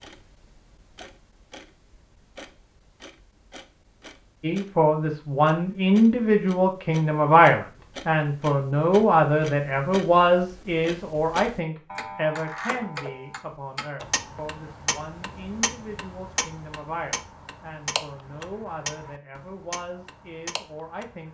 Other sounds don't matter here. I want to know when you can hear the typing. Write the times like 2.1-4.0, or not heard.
not heard.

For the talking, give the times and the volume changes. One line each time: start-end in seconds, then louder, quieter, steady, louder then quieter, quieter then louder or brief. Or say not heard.
4.4-21.2 quieter.